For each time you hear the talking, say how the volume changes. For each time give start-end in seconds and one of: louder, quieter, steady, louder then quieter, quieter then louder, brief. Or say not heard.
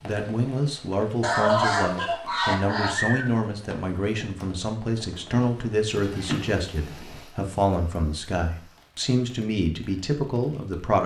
0.0-11.0 steady.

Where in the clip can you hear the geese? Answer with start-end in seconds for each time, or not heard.
1.2-3.2, 6.0-7.2.